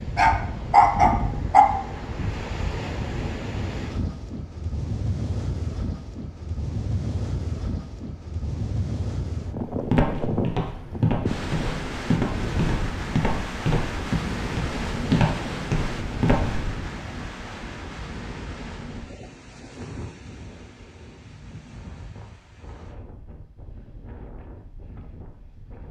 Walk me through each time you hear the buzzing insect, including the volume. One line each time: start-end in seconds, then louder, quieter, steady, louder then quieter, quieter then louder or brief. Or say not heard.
not heard.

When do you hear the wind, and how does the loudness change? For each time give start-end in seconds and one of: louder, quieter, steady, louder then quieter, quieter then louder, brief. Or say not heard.
0.0-25.8 quieter.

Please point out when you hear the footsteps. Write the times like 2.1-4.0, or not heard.
9.6-16.8.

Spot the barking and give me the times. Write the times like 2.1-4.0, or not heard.
0.1-1.6.